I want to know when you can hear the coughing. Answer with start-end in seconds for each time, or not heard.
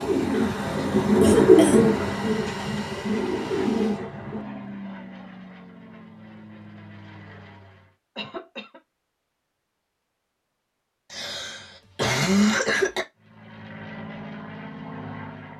1.2-1.9, 8.2-8.8, 11.1-13.1.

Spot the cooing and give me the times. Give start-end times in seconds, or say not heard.
0.0-4.5.